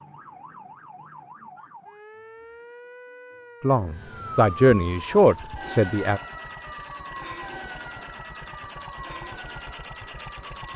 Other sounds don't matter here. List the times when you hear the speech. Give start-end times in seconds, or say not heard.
3.6-6.2.